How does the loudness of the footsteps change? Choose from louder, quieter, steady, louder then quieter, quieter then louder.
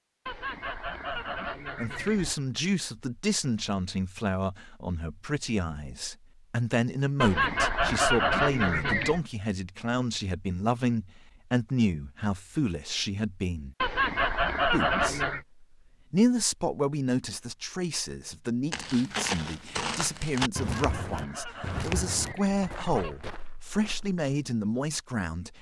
quieter.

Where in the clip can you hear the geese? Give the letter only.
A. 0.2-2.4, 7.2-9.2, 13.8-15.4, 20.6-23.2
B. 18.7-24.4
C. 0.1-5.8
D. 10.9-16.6
A.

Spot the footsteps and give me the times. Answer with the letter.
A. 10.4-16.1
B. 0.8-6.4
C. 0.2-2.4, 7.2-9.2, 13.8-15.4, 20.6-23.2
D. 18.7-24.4
D.